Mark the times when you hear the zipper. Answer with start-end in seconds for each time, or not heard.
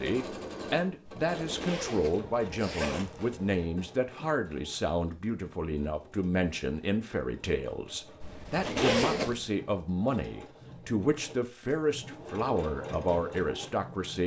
1.1-3.5, 8.2-9.4.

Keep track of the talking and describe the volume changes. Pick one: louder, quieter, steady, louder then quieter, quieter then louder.
steady.